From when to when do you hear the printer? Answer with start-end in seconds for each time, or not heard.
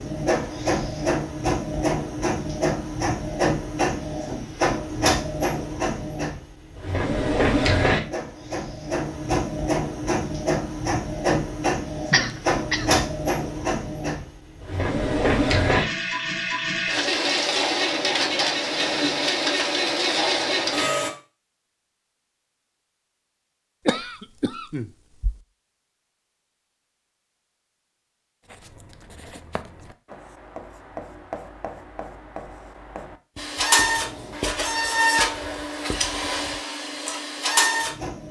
0.0-21.1, 33.4-38.2.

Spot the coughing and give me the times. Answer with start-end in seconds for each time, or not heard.
12.1-13.1, 23.9-25.4.